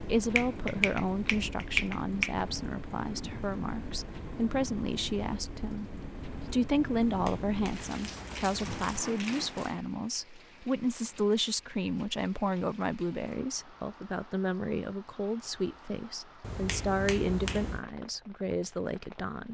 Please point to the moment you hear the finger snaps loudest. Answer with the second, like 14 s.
2 s.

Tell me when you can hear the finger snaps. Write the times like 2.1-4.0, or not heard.
0.3-2.4, 7.0-9.0, 16.4-17.9.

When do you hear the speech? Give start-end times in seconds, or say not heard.
0.0-19.4.